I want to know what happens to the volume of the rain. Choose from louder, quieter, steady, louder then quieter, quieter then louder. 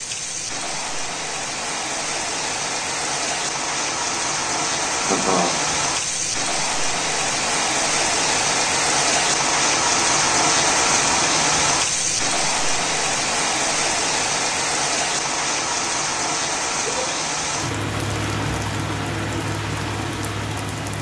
louder then quieter.